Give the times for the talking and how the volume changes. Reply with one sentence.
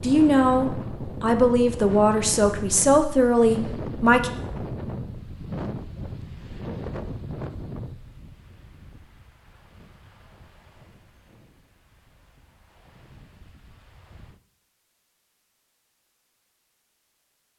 The talking can be heard from 0.0 to 4.3 s, at a steady volume.